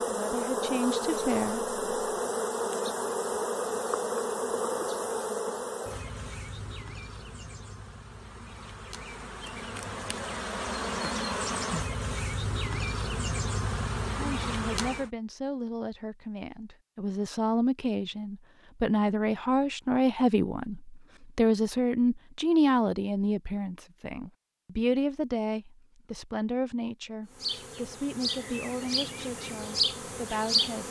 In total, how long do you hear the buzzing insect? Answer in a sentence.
You can hear the buzzing insect for 19 seconds altogether.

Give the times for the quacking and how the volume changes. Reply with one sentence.
The quacking can't be heard in this clip.